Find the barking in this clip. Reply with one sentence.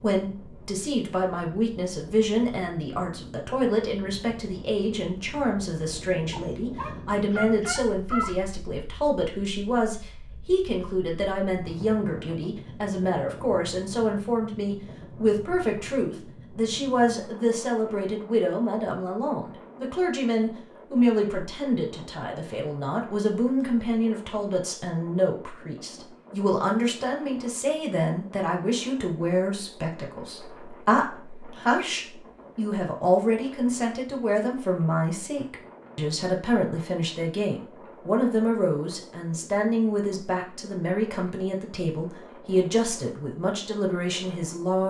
You can hear the barking from 6.3 to 8.3 s.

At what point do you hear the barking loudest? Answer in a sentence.
The loudest moment of the barking is at 8 seconds.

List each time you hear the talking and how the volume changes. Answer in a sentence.
The talking can be heard from 0.0 to 44.8 s, at a steady volume.